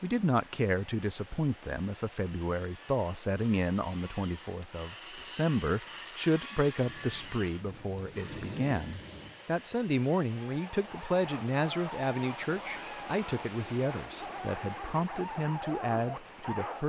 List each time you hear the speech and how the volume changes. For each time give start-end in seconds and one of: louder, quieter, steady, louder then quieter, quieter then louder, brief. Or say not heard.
0.0-16.8 steady.